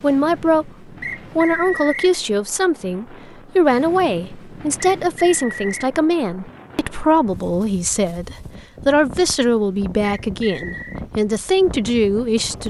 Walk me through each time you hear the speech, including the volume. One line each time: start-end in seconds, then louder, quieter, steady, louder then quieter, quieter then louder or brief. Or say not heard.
0.0-0.7 brief
1.4-12.6 steady.